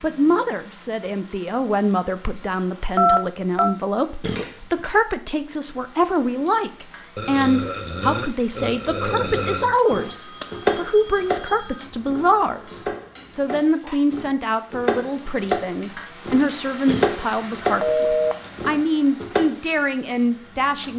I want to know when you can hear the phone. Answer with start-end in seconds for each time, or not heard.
3.0-3.7, 9.8-11.8, 17.8-18.5.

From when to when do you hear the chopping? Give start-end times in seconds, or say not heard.
9.9-11.4, 12.1-17.9, 18.6-19.5.